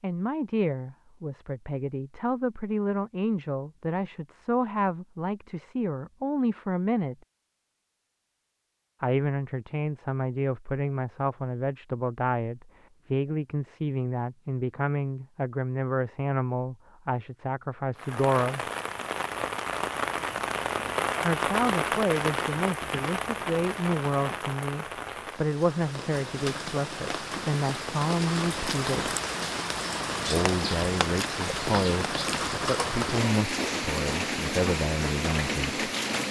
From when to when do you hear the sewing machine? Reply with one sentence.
You can't hear the sewing machine here.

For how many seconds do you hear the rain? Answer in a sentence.
You can hear the rain for 18 seconds altogether.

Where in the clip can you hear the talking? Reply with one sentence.
The talking can be heard from 0.0 to 7.2 s, from 9.0 to 18.6 s, from 21.2 to 29.1 s and from 30.2 to 35.8 s.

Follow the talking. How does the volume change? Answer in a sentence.
The loudness of the talking stays about the same.